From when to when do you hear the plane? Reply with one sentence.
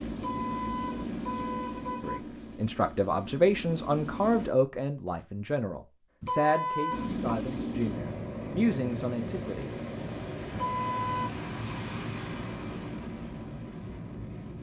The plane can be heard from 0.0 to 4.5 s and from 6.9 to 14.5 s.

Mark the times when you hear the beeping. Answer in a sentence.
The beeping can't be heard in this clip.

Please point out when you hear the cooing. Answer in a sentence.
You can't hear the cooing here.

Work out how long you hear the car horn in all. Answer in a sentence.
You can hear the car horn for 4 seconds altogether.